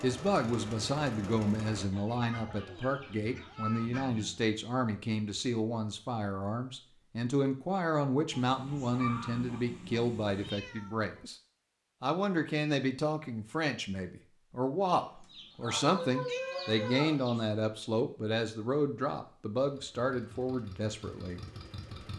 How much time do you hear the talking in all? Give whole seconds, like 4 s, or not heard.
21 s.